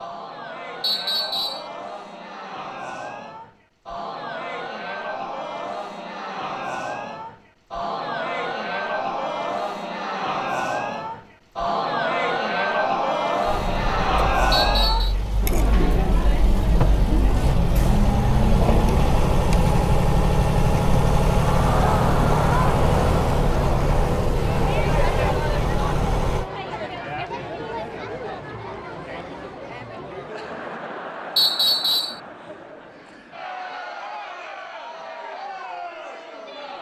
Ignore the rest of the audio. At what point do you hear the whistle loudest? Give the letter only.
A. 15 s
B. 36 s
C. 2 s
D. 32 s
D.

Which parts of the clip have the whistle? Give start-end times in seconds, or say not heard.
0.8-1.6, 14.5-15.2, 31.4-32.2.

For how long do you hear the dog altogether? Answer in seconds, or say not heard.
not heard.